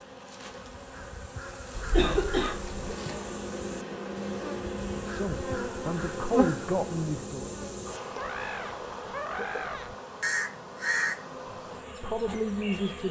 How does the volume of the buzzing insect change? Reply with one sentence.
The loudness of the buzzing insect goes up, then down.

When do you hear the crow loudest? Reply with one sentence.
The volume of the crow peaks at 11 seconds.